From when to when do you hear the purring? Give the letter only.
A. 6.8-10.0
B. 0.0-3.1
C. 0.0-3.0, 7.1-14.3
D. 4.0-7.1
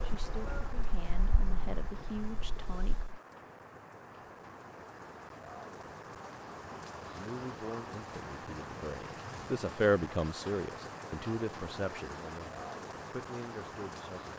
B.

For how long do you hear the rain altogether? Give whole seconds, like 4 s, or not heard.
14 s.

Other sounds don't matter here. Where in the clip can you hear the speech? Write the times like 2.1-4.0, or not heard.
0.0-3.0, 7.1-14.3.